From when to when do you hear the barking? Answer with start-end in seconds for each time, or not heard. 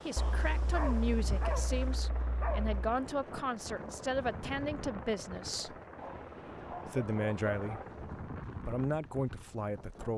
0.1-2.9, 6.0-7.8.